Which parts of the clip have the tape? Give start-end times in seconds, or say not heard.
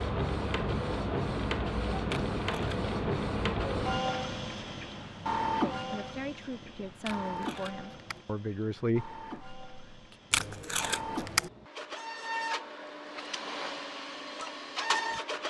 2.1-2.8, 7.0-8.2, 10.3-11.5.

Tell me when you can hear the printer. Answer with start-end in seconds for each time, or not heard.
0.0-15.4.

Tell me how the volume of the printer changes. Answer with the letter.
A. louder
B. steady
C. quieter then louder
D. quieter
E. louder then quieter
C.